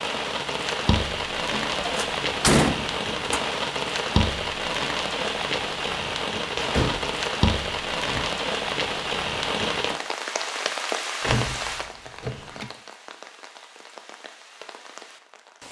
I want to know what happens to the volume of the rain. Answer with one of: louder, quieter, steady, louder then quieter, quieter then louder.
quieter.